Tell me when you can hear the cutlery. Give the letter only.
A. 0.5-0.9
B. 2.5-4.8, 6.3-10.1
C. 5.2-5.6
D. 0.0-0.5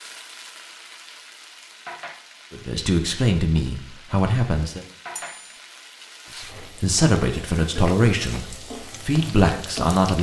C.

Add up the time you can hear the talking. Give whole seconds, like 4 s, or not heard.
6 s.